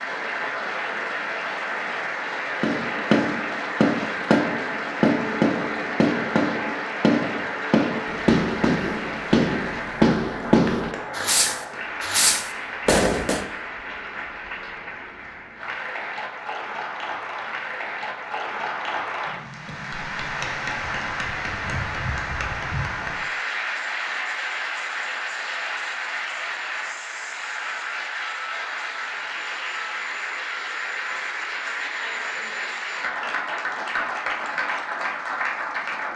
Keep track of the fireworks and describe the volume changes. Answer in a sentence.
The volume of the fireworks stays about the same.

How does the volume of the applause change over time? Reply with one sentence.
The volume of the applause stays about the same.